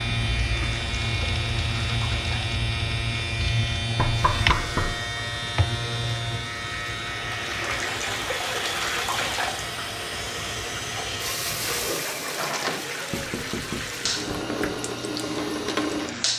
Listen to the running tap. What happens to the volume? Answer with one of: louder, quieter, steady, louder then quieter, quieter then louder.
louder.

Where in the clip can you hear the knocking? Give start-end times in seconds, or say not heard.
4.0-5.0, 13.1-14.8.